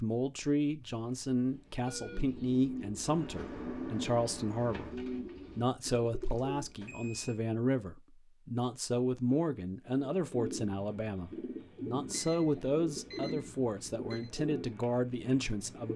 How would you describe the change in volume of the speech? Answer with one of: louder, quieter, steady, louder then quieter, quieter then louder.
steady.